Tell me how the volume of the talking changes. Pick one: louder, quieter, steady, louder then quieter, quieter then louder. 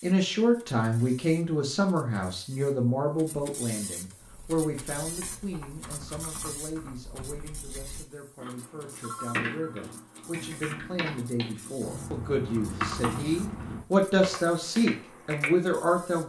quieter then louder.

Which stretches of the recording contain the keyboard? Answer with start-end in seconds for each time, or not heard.
4.2-15.6.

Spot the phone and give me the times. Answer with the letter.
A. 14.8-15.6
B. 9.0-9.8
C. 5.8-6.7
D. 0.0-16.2
B.